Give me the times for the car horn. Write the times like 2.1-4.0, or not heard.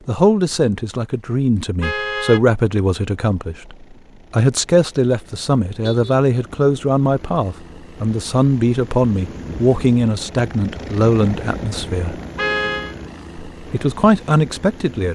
1.8-2.5, 5.8-6.2, 12.3-12.9.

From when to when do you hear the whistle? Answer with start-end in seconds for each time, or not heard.
not heard.